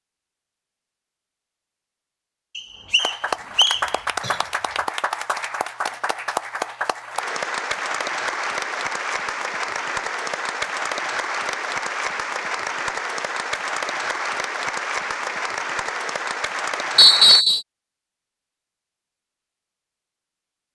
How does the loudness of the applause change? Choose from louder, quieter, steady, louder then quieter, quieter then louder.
steady.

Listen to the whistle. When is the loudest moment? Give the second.
17 s.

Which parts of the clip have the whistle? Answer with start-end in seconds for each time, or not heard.
2.5-3.8, 16.9-17.6.